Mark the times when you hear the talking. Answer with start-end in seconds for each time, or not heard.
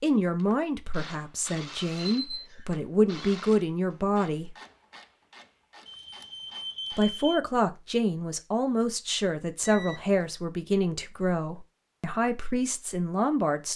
0.0-4.5, 6.9-13.7.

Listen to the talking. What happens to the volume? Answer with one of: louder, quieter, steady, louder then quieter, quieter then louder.
steady.